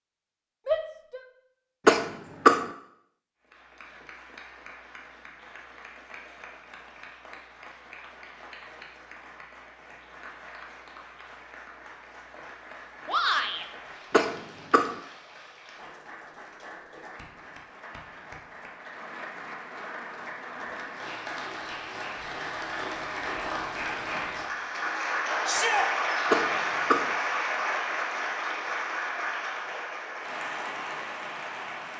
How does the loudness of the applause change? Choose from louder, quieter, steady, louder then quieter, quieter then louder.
louder.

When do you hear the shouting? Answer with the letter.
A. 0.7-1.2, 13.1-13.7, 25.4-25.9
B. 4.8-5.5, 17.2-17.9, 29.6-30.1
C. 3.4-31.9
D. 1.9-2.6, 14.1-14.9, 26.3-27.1
A.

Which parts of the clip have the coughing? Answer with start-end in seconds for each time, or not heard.
1.9-2.6, 14.1-14.9, 26.3-27.1.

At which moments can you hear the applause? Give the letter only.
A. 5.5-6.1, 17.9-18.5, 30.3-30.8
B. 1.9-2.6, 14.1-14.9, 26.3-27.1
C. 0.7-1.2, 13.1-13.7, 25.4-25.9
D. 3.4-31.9
D.